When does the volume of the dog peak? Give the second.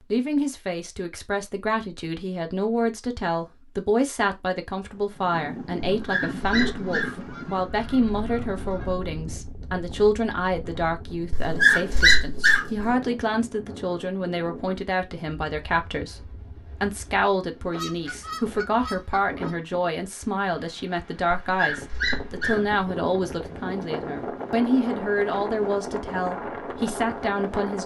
12 s.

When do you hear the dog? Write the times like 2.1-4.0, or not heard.
6.0-7.3, 11.3-12.9, 21.4-22.7.